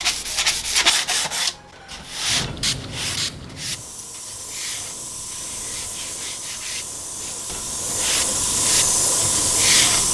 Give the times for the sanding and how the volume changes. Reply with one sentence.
The sanding can be heard from 0.0 to 10.1 s, getting quieter then louder.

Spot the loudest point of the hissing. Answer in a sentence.
The loudest moment of the hissing is at 9 seconds.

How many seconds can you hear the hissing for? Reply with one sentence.
The hissing can be heard for 8 seconds in total.